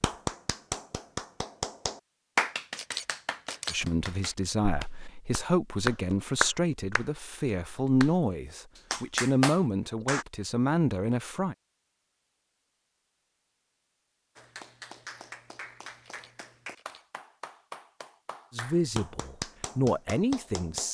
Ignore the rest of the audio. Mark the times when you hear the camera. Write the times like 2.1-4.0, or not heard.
2.8-3.8, 16.0-17.1.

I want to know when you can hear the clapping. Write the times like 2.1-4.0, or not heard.
0.0-8.2, 8.9-10.2, 14.3-20.8.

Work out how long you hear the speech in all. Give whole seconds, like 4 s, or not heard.
10 s.